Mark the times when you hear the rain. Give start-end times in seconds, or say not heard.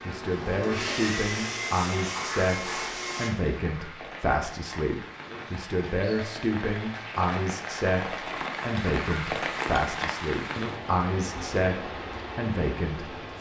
0.0-13.3.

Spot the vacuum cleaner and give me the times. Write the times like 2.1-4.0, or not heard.
0.0-3.3.